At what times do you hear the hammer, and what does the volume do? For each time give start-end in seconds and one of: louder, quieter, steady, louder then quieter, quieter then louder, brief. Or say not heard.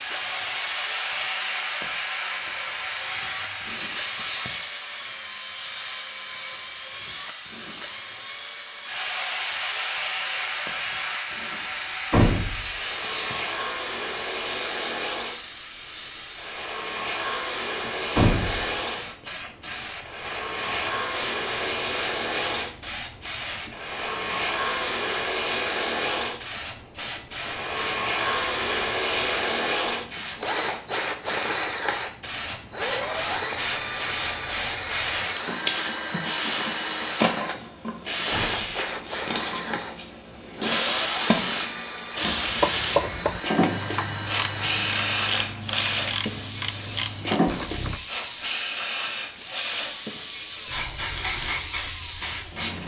not heard.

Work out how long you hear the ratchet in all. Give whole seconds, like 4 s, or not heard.
6 s.